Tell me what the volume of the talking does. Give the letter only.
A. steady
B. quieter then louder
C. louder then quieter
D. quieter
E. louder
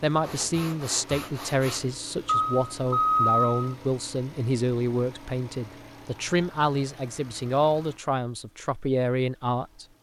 A.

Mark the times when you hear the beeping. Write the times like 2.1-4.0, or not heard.
2.2-3.8.